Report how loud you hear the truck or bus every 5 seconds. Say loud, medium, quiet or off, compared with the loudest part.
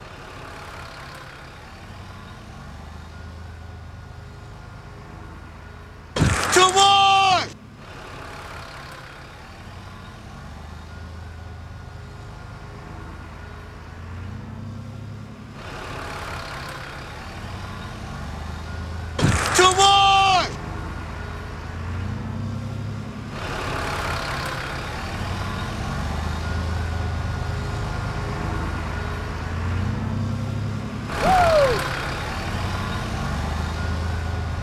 quiet, quiet, quiet, medium, loud, loud, loud.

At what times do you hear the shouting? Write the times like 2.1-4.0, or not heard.
6.2-7.5, 19.1-20.5, 31.2-31.8.